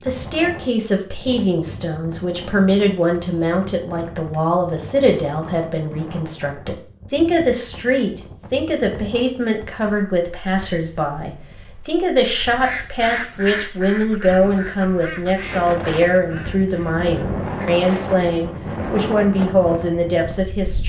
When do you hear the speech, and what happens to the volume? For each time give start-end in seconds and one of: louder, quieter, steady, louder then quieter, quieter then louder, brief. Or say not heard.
0.0-20.8 steady.